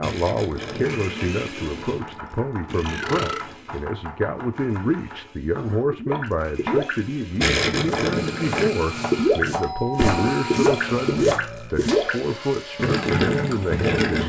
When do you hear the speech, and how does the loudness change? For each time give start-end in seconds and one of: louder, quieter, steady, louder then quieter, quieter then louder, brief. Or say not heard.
0.0-14.2 steady.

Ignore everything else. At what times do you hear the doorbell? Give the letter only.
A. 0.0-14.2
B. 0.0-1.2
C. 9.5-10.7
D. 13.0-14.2
C.